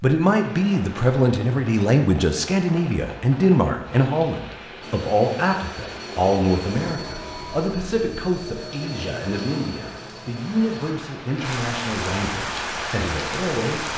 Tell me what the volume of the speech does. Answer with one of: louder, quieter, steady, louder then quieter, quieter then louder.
quieter.